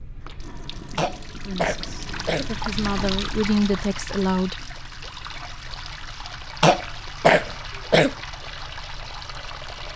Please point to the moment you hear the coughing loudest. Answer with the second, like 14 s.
7 s.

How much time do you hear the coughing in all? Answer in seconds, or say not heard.
3 s.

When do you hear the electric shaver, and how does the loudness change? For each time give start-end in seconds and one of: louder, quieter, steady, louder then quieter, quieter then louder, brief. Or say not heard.
not heard.